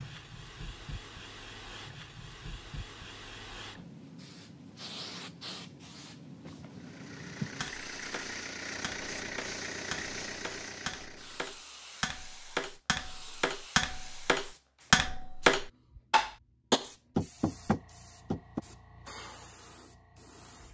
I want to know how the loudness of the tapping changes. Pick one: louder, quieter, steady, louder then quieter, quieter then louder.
louder.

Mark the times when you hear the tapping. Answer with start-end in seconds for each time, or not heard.
7.6-18.6.